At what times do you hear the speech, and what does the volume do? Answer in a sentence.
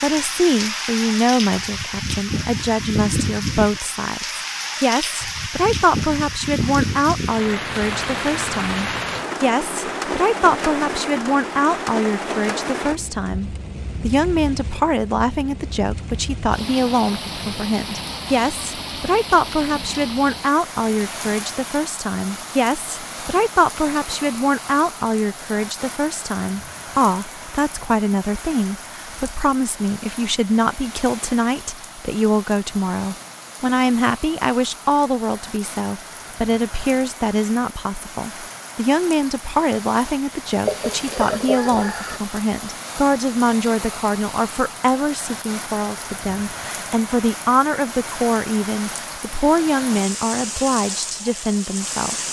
The speech can be heard from 0.0 to 52.2 s, at a steady volume.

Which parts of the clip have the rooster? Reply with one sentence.
You can hear the rooster from 40.6 to 42.2 s.